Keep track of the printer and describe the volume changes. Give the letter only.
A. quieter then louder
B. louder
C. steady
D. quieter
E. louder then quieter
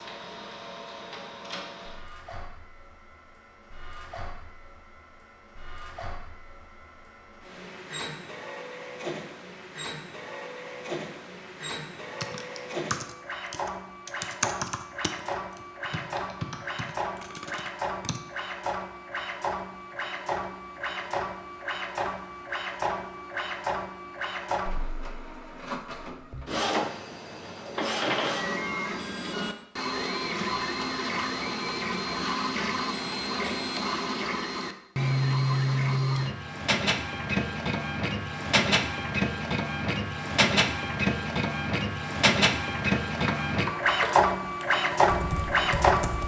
B.